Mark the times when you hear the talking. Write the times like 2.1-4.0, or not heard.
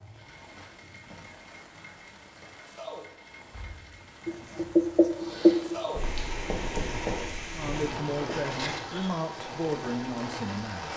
7.5-10.9.